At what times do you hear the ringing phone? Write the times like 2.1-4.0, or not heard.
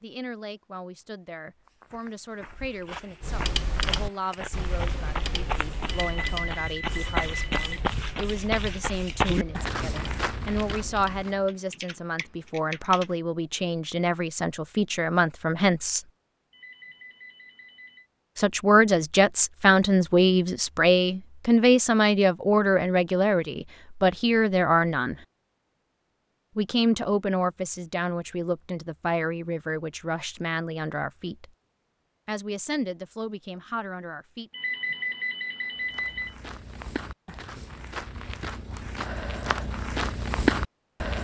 5.9-7.8, 16.5-18.1, 34.5-36.4.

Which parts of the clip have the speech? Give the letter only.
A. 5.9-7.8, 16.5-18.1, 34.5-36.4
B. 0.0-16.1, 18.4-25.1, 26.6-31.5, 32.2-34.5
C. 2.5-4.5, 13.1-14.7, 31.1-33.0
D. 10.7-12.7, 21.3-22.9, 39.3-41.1
B.